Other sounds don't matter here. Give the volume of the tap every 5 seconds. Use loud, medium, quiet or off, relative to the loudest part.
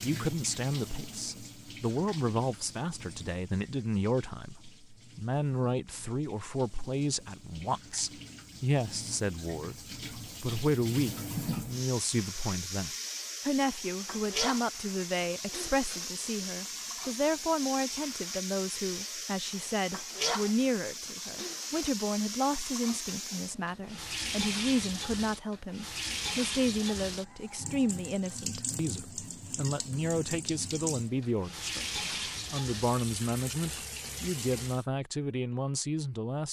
medium, quiet, loud, loud, loud, loud, loud, off.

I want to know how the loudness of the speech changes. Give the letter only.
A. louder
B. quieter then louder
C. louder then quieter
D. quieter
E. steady
E.